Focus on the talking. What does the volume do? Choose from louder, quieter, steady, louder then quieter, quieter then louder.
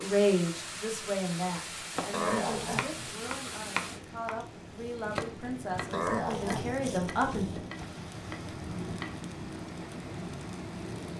quieter then louder.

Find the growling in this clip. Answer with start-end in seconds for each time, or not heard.
2.1-3.1, 5.9-6.8.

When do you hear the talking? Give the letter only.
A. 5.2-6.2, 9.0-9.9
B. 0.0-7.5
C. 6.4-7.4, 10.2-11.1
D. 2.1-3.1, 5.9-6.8
B.